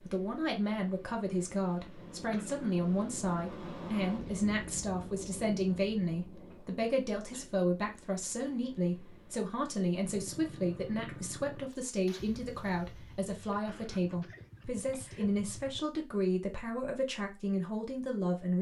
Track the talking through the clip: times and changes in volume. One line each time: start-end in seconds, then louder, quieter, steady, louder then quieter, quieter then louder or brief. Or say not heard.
0.0-18.5 steady.